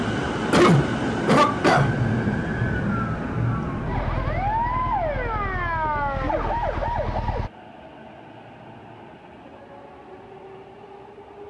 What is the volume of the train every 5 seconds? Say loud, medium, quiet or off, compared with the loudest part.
loud, quiet, quiet.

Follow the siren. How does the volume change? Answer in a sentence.
The loudness of the siren stays about the same.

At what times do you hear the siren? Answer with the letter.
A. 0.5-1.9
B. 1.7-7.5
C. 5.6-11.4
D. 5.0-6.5
B.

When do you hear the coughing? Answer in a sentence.
The coughing can be heard from 0.5 to 1.9 s.